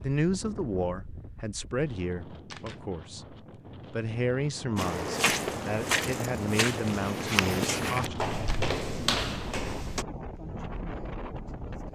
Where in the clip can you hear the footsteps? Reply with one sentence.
You can hear the footsteps from 4.8 to 10.1 s.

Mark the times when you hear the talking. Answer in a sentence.
You can hear the talking from 0.0 to 8.2 s.